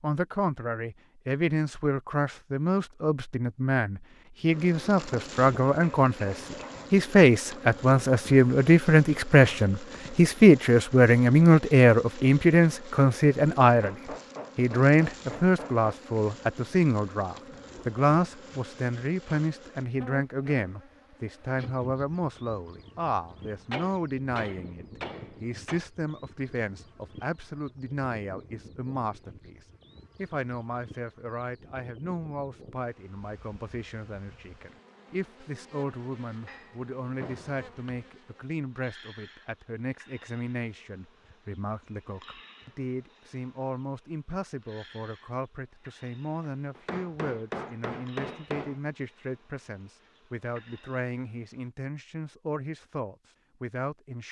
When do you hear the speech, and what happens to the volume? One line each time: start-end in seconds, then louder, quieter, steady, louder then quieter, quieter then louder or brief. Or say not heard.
0.0-13.9 louder
14.6-54.2 quieter.